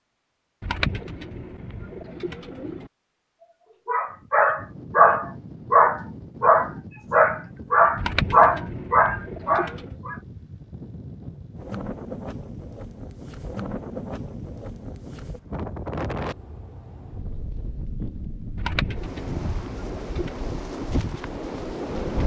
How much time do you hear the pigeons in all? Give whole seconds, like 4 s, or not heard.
6 s.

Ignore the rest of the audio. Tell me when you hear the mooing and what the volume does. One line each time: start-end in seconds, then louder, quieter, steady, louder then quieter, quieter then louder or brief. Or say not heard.
not heard.